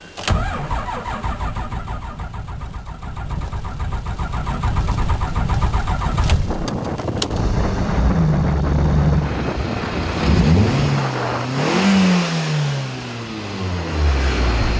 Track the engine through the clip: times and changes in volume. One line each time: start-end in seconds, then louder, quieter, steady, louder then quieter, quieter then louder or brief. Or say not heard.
0.0-14.7 louder.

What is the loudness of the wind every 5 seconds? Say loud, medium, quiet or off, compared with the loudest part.
off, loud, loud.